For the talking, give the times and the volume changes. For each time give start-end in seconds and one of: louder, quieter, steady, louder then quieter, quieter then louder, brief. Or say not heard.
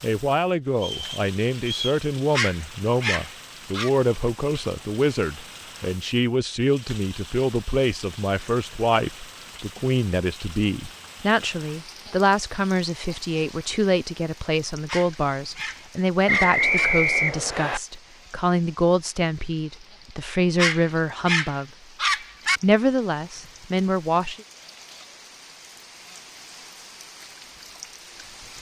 0.0-21.7 steady
22.6-24.4 brief.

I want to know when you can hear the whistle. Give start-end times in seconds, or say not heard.
0.8-2.0, 16.2-17.8.